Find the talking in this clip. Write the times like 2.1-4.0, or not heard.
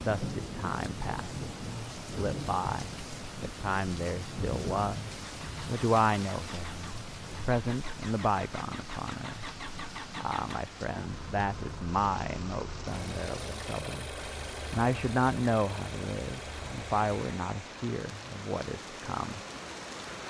0.0-9.4, 10.2-14.1, 14.7-19.4.